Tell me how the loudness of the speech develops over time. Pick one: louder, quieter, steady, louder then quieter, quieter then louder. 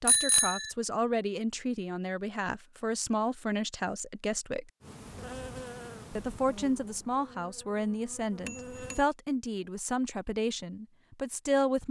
steady.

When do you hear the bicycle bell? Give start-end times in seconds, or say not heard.
0.1-0.7, 8.4-9.1.